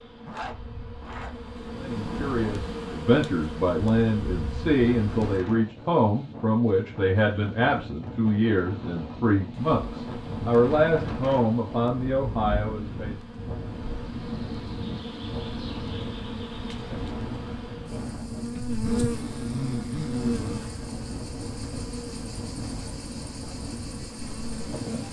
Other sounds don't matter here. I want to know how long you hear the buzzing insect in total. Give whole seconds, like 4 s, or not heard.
21 s.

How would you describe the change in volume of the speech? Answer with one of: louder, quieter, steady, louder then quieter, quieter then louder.
steady.